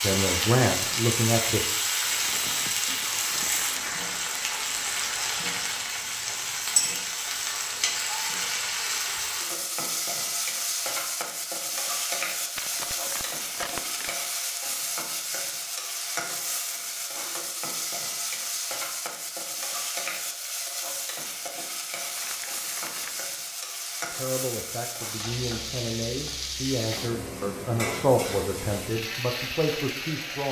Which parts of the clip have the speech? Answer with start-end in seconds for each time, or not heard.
0.0-1.6, 24.1-30.4.